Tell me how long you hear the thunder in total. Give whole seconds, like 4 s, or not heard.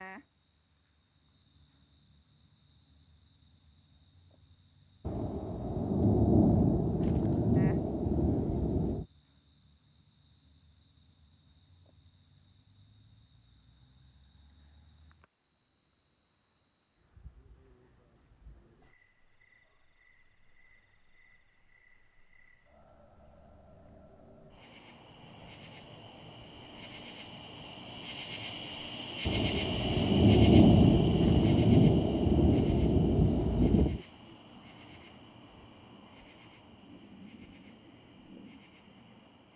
9 s.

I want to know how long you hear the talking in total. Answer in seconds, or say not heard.
not heard.